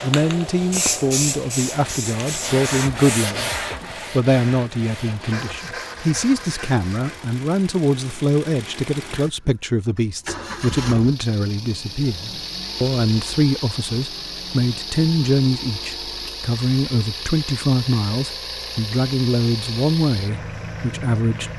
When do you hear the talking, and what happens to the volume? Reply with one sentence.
The talking can be heard from 0.0 to 21.5 s, at a steady volume.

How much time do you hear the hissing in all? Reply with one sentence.
You can hear the hissing for 3 seconds altogether.